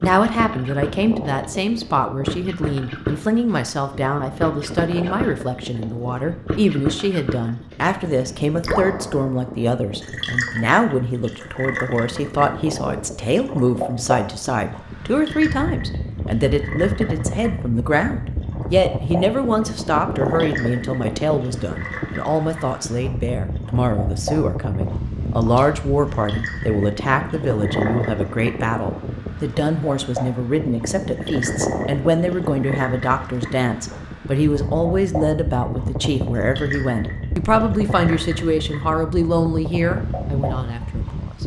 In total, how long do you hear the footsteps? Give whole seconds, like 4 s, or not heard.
not heard.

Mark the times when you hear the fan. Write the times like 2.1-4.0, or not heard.
0.0-41.4.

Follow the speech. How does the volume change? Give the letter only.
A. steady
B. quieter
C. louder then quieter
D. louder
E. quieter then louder
A.